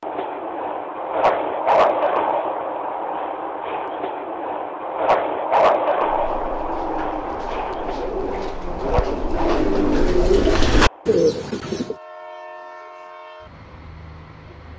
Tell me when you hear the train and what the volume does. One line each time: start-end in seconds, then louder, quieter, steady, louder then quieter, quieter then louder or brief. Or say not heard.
0.0-14.7 quieter.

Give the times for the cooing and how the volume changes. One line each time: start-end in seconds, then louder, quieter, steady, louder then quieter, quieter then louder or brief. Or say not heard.
6.0-11.9 louder.